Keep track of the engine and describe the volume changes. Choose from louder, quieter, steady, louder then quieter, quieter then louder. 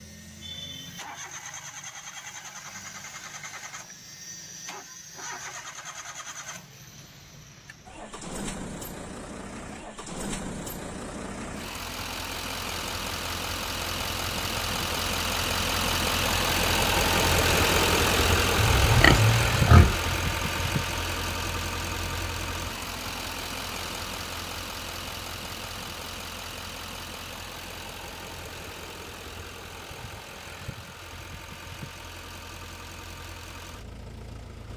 louder then quieter.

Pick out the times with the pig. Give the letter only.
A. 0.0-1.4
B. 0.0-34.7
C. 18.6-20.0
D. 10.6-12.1
C.